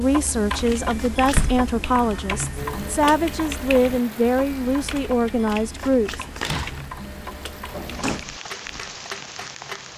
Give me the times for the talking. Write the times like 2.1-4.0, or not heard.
0.0-6.2.